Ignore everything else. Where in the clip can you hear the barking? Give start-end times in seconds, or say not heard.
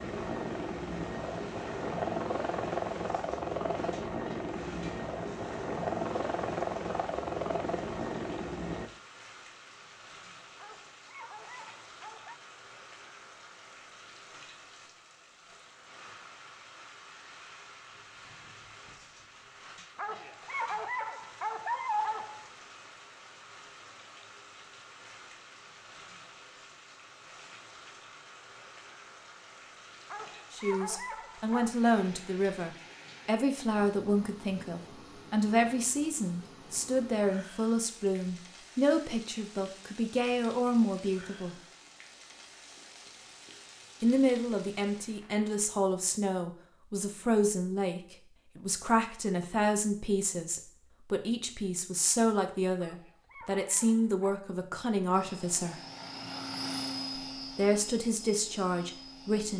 10.6-12.3, 19.9-22.5, 30.1-31.8, 52.8-54.5.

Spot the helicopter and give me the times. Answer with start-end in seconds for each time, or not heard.
0.0-8.9, 55.1-59.5.